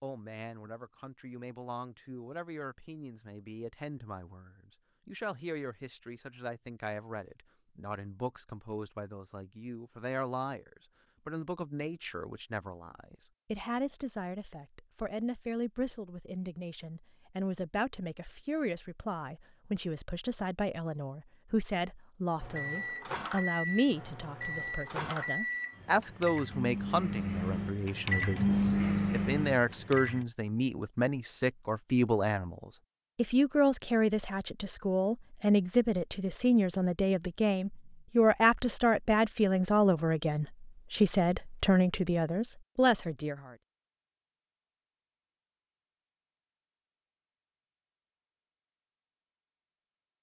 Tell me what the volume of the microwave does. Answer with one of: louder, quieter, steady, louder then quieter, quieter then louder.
louder.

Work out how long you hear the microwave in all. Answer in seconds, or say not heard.
8 s.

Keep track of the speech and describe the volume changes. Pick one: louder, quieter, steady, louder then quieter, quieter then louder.
louder.